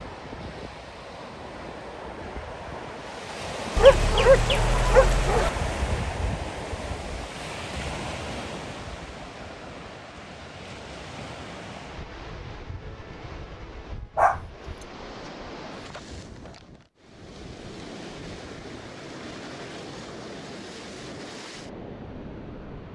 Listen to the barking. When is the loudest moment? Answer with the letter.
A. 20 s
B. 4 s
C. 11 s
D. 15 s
B.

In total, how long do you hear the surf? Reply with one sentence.
The surf can be heard for 23 seconds in total.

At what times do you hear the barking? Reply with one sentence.
The barking can be heard from 3.8 to 5.5 s and from 14.2 to 14.8 s.